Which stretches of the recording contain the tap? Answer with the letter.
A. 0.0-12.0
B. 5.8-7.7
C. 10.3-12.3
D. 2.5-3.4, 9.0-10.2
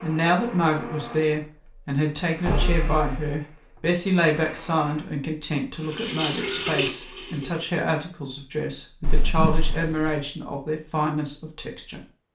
B.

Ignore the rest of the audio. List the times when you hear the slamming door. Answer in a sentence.
You can hear the slamming door from 2.5 to 3.4 s and from 9.0 to 10.2 s.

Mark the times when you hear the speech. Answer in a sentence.
You can hear the speech from 0.0 to 12.0 s.